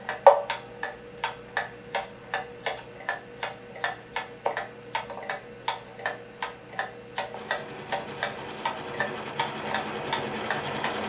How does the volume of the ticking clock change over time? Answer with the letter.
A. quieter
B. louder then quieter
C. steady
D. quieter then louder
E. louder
C.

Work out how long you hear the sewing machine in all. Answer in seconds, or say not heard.
4 s.